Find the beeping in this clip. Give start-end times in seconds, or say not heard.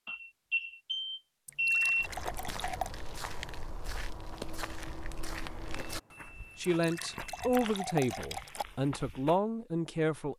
0.1-2.1, 5.8-7.6.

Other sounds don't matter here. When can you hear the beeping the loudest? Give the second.
2 s.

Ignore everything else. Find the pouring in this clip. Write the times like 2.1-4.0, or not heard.
1.4-2.9, 6.7-8.7.